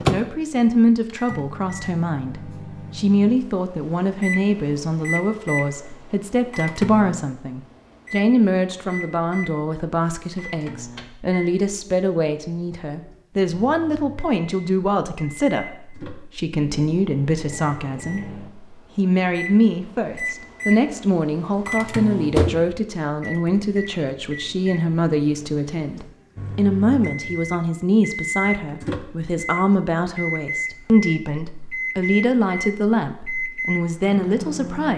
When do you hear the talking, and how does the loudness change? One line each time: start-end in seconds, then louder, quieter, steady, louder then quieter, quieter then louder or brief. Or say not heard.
0.1-34.9 steady.